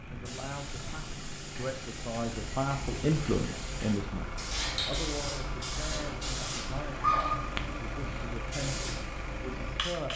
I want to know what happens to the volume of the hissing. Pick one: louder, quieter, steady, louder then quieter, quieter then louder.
louder then quieter.